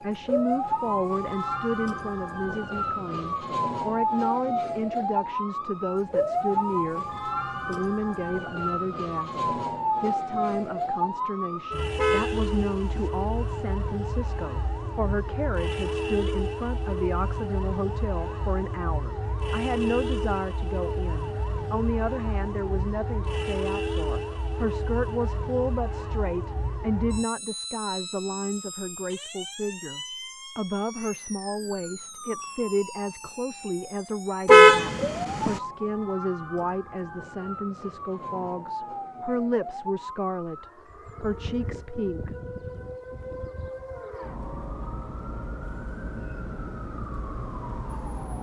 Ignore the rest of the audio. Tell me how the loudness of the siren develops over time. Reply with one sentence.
The loudness of the siren goes down.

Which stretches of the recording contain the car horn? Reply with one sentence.
The car horn can be heard from 11.9 to 13.1 s and from 34.5 to 35.6 s.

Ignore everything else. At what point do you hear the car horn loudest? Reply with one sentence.
The loudest moment of the car horn is at 35 seconds.